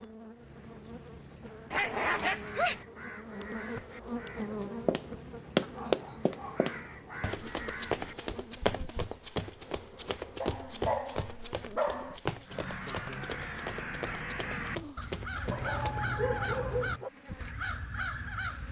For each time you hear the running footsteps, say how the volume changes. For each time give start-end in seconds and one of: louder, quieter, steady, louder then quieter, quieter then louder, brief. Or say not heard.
4.6-16.1 quieter.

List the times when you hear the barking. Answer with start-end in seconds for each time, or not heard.
1.7-2.9, 5.8-7.7, 10.4-12.2, 15.5-17.1.